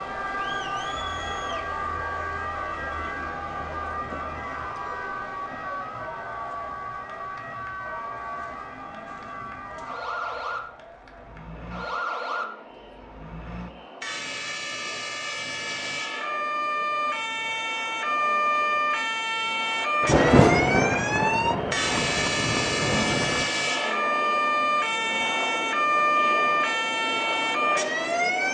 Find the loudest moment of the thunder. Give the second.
20 s.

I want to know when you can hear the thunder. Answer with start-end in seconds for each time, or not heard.
20.0-23.5.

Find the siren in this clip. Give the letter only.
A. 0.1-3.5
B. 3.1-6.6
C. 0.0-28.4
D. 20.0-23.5
C.